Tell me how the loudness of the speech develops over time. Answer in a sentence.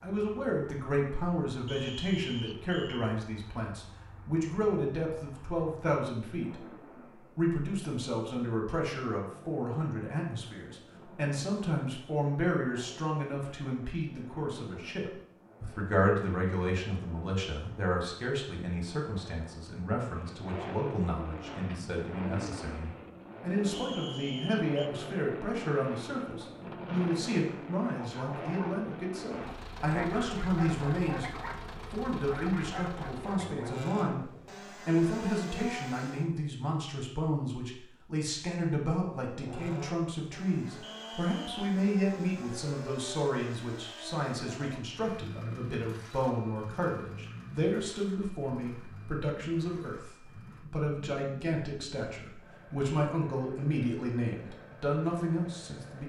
The volume of the speech stays about the same.